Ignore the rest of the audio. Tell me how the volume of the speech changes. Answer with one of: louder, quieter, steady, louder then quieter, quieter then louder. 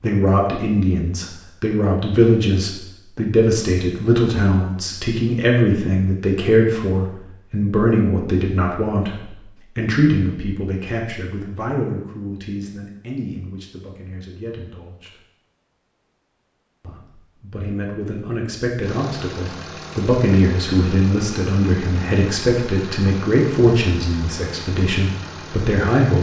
quieter then louder.